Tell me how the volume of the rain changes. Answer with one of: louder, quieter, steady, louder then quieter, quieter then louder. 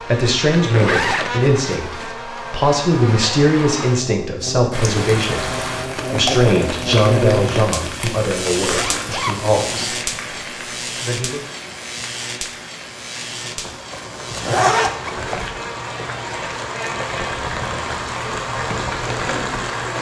quieter then louder.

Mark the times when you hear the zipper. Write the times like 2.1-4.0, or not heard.
0.5-2.1, 8.7-9.9, 13.9-15.5.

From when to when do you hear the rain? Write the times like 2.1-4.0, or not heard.
4.7-19.9.